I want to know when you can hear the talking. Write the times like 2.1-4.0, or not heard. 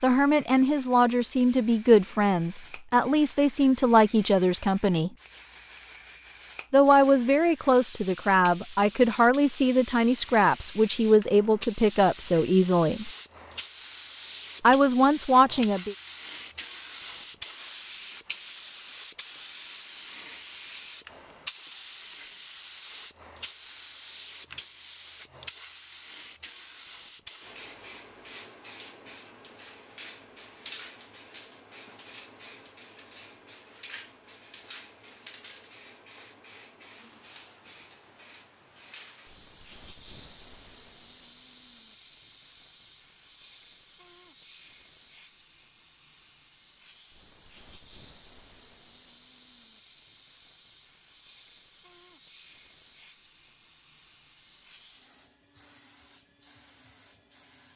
0.0-5.1, 6.7-13.1, 14.6-15.9.